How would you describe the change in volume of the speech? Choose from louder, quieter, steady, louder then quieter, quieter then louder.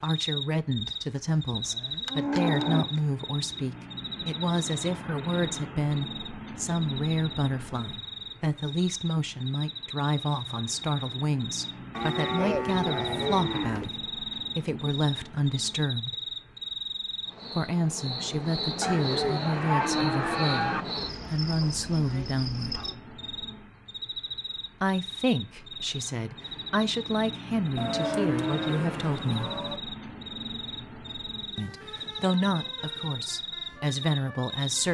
steady.